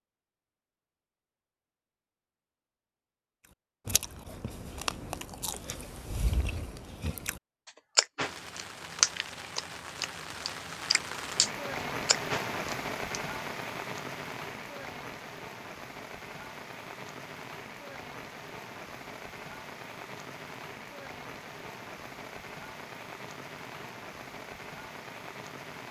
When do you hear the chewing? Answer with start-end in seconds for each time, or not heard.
3.9-13.2.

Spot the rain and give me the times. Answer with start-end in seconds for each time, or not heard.
8.2-25.8.